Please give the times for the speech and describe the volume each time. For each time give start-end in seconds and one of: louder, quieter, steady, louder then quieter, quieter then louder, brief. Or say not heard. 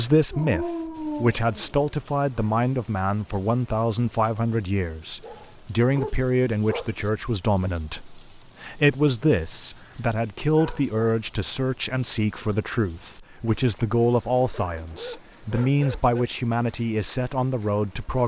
0.0-18.2 steady.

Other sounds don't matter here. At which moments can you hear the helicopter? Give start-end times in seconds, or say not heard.
not heard.